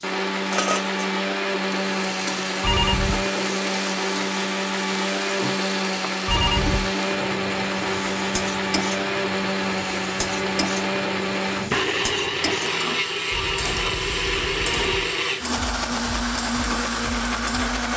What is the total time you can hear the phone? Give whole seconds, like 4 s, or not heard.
3 s.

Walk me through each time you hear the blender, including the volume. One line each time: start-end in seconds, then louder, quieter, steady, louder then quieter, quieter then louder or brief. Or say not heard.
0.0-17.9 steady.